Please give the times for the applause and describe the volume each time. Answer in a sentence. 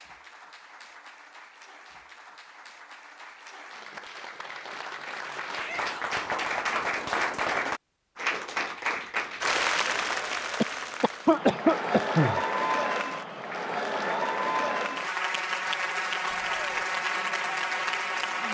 You can hear the applause from 0.0 to 18.5 s, getting louder.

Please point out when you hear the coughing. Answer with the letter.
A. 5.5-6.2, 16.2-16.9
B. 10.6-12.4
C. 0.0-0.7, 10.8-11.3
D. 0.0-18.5
B.